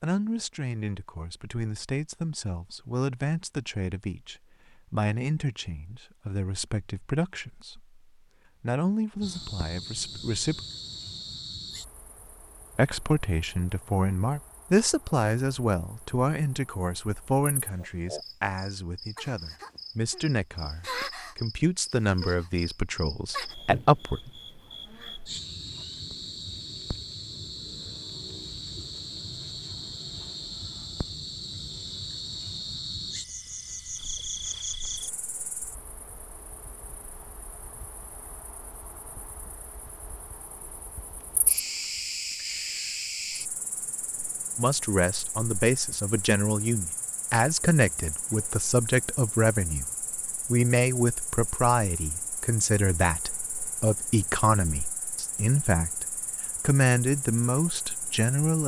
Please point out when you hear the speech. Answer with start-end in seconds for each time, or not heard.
0.0-8.0, 8.6-10.6, 12.8-24.3, 44.5-49.9, 50.5-58.6.